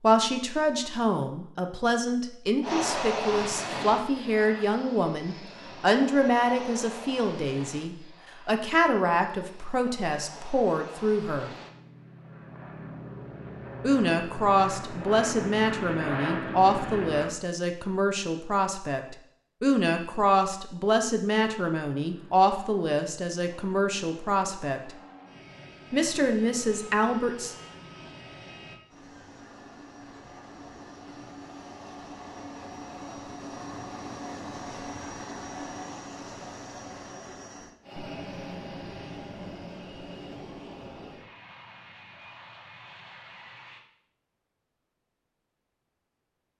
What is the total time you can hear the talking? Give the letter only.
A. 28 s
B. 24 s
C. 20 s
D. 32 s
B.